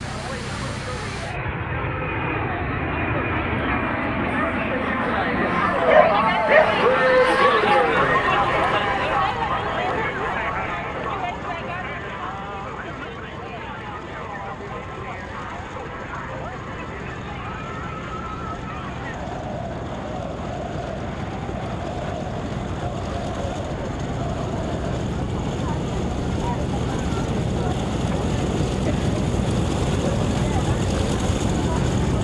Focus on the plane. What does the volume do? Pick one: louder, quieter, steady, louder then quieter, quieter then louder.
quieter then louder.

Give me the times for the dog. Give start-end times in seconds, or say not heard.
5.3-6.8.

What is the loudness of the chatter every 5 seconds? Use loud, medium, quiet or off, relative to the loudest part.
medium, loud, medium, quiet, quiet, quiet, quiet.